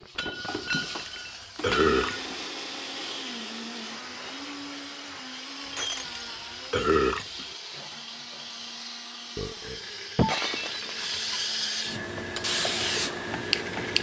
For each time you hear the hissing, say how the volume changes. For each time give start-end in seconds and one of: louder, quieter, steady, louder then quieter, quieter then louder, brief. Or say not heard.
0.0-13.9 louder.